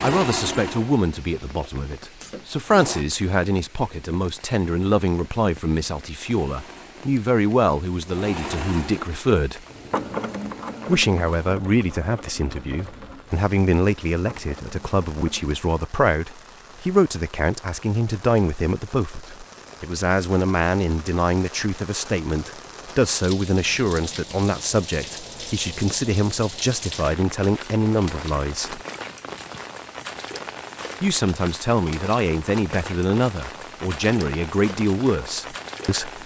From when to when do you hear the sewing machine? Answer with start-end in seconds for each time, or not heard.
0.0-3.0, 6.2-15.6.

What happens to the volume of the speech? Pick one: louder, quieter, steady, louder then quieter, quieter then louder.
steady.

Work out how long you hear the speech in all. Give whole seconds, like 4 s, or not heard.
33 s.